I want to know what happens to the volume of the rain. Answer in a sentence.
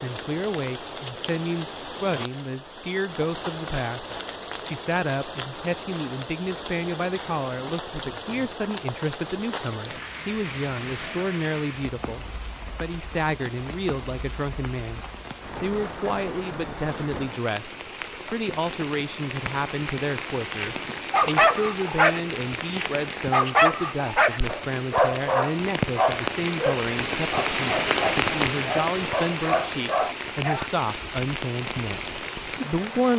The loudness of the rain goes up.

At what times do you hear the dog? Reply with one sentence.
The dog can be heard from 20.6 to 30.7 s.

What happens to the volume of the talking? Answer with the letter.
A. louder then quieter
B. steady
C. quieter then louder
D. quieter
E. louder
B.